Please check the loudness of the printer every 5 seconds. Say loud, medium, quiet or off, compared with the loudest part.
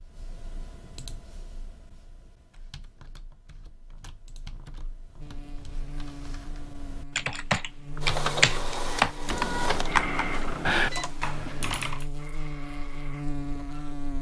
off, loud, medium.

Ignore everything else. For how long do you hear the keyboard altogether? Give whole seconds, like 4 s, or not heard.
12 s.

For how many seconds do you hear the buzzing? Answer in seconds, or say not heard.
9 s.